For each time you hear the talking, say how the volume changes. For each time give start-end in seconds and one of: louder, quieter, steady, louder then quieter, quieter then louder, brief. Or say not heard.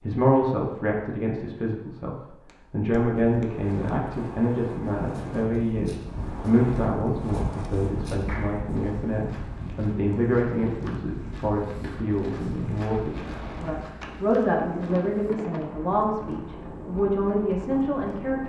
0.0-18.4 steady.